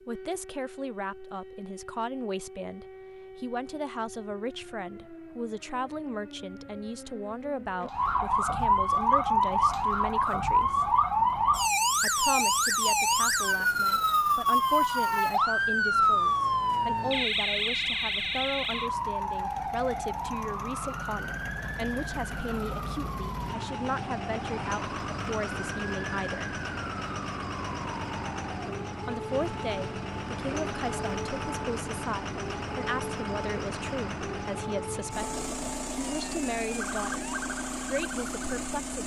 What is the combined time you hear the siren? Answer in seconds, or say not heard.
39 s.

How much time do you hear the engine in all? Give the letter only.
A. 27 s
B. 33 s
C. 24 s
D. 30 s
D.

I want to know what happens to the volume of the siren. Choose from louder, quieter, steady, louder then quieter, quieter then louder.
louder then quieter.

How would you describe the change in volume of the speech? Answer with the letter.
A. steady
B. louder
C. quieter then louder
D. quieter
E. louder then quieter
A.